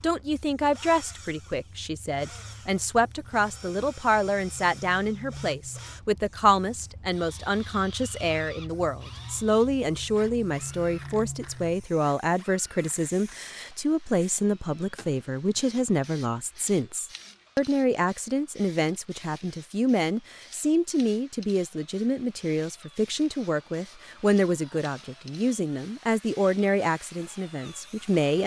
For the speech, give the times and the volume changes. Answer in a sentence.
The speech can be heard from 0.0 to 28.4 s, at a steady volume.